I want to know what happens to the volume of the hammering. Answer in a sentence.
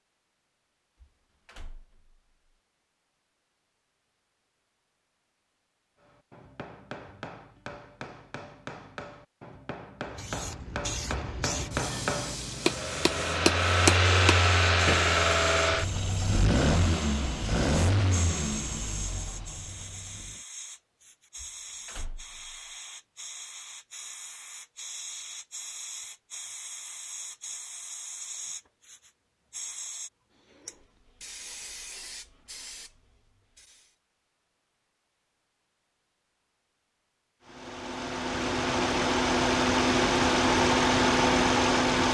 The volume of the hammering goes up.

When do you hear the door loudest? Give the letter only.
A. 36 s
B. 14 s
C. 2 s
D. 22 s
D.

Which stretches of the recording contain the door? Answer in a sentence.
You can hear the door from 1.0 to 2.0 s and from 21.4 to 22.6 s.